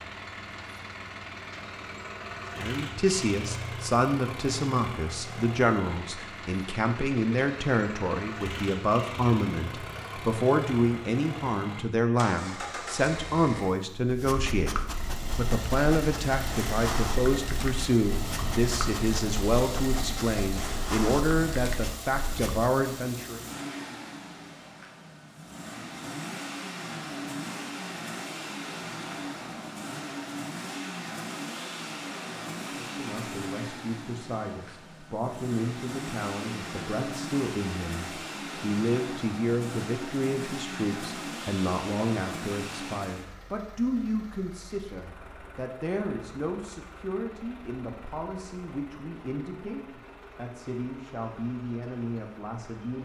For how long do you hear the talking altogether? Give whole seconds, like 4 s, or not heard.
41 s.